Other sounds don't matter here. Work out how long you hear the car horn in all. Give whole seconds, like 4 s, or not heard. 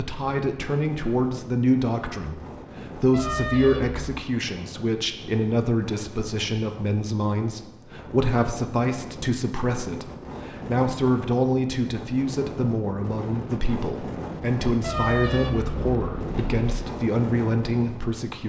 3 s.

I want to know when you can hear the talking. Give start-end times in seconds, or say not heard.
0.0-18.4.